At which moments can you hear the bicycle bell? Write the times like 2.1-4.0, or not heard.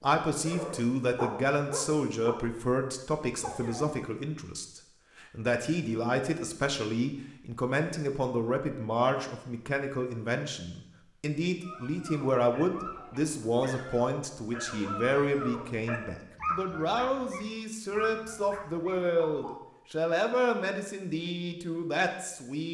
not heard.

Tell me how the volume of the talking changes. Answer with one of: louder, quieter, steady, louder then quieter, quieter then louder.
steady.